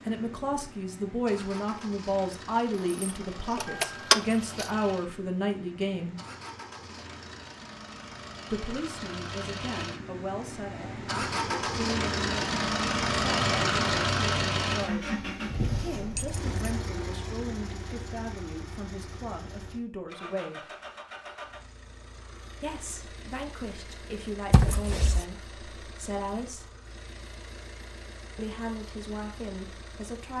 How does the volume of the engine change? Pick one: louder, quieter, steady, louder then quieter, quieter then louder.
louder then quieter.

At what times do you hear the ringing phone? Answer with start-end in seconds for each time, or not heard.
not heard.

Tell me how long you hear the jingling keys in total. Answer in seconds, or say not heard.
3 s.